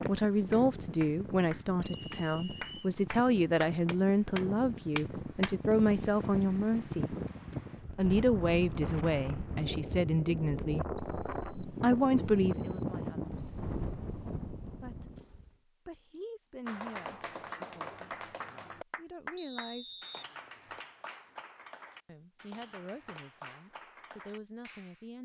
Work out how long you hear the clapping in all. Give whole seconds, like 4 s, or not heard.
14 s.